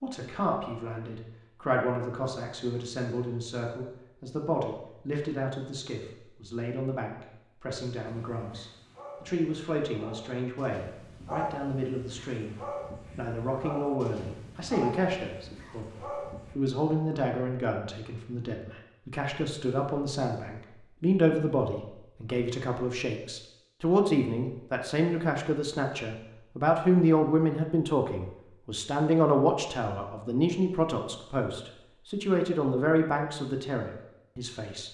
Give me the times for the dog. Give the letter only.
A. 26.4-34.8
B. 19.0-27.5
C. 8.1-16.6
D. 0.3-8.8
C.